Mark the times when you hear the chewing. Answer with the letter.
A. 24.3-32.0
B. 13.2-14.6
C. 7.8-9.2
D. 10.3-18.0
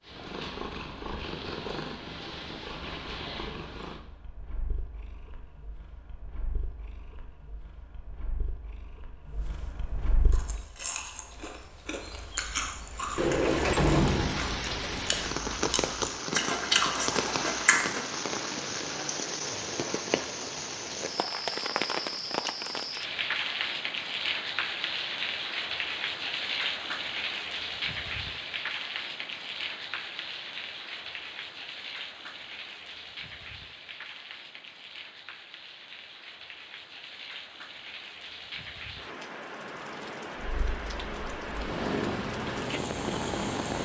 D.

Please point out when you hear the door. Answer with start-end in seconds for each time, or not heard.
13.2-14.6.